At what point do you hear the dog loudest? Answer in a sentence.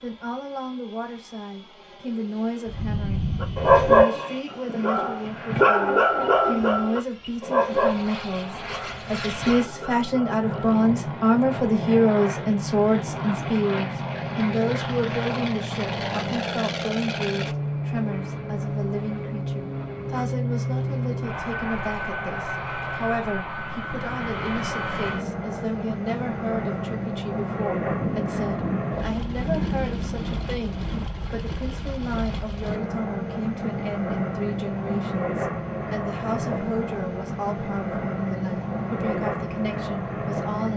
The volume of the dog peaks at 4 seconds.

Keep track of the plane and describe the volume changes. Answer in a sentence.
The loudness of the plane goes up.